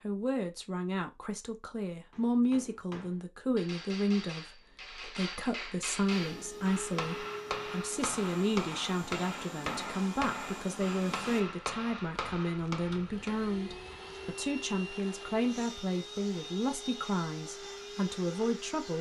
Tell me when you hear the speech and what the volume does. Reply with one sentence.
You can hear the speech from 0.0 to 18.9 s, at a steady volume.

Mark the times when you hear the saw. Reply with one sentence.
You can't hear the saw here.